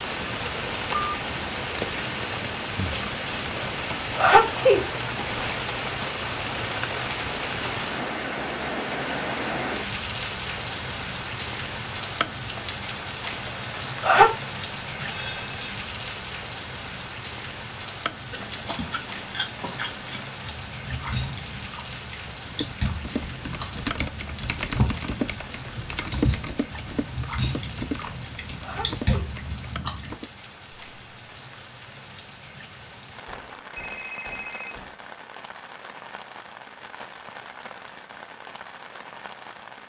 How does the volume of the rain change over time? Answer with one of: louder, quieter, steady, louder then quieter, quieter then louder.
quieter.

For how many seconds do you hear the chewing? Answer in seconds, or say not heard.
12 s.